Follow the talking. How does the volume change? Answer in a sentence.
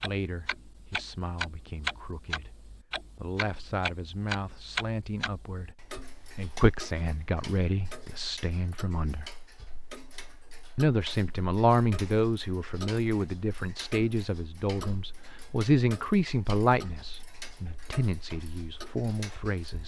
The loudness of the talking goes up.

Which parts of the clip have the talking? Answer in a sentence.
The talking can be heard from 0.0 to 9.3 s and from 10.8 to 19.8 s.